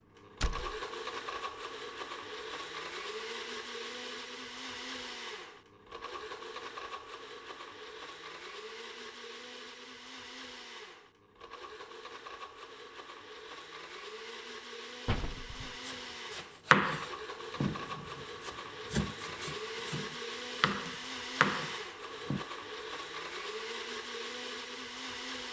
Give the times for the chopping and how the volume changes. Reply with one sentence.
You can hear the chopping from 15.8 to 22.4 s, getting quieter then louder.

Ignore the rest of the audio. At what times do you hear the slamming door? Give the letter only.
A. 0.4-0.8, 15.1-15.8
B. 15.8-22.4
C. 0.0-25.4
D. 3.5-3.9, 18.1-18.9
A.